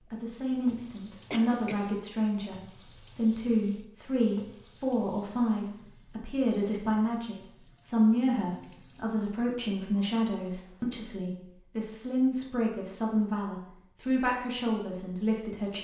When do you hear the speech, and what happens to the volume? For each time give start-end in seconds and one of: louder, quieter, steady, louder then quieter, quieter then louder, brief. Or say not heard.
0.1-15.8 steady.